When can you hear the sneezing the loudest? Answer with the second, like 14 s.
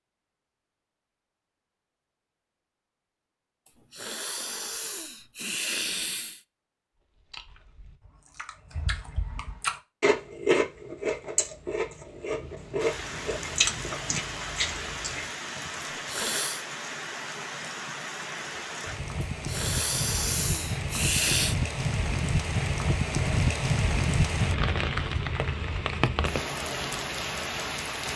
21 s.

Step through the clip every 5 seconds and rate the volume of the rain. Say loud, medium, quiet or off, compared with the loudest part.
off, off, medium, medium, loud, loud.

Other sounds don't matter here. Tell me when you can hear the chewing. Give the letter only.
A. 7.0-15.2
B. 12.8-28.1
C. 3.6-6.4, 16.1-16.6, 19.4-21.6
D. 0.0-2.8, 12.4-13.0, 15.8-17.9
A.